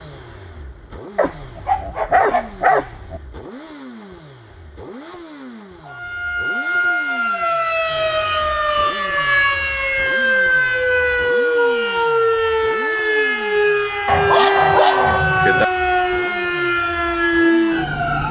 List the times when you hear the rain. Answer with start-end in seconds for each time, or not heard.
not heard.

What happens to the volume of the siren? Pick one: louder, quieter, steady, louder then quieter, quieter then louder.
steady.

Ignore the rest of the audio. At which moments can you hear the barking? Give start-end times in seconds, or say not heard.
1.1-3.2, 14.1-15.7.